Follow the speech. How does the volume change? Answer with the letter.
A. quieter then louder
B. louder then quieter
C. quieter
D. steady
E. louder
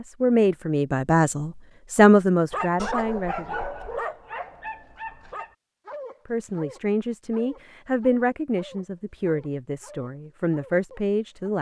C.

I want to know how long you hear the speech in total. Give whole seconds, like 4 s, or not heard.
9 s.